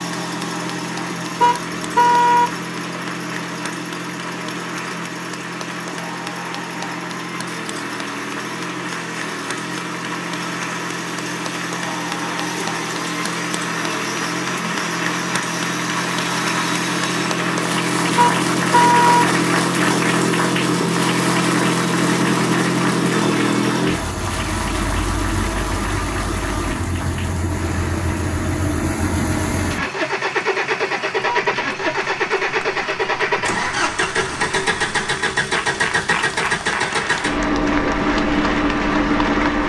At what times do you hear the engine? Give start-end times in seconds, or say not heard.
0.0-39.6.